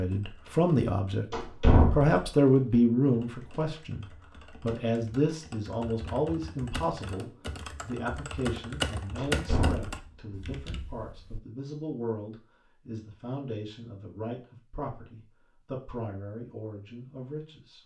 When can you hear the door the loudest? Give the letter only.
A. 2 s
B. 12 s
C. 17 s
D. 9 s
A.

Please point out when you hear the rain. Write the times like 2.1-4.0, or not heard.
not heard.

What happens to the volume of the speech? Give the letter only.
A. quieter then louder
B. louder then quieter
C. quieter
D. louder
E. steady
C.